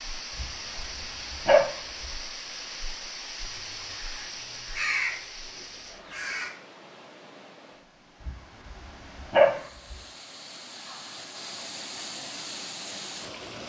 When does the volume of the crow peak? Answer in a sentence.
The volume of the crow peaks at 5 seconds.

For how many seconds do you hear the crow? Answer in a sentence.
You can hear the crow for 3 seconds altogether.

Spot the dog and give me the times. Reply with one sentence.
You can hear the dog from 0.3 to 2.0 s and from 8.2 to 9.9 s.